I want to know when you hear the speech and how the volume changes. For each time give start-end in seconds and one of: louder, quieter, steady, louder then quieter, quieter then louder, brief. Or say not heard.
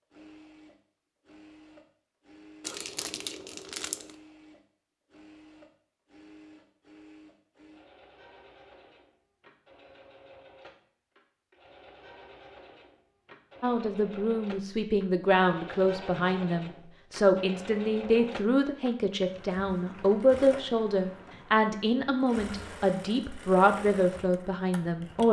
13.6-25.2 steady.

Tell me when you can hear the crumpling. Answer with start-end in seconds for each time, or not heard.
2.6-4.2.